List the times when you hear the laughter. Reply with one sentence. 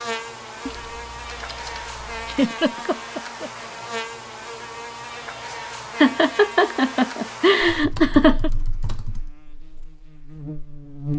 You can hear the laughter from 2.2 to 3.5 s and from 6.0 to 8.5 s.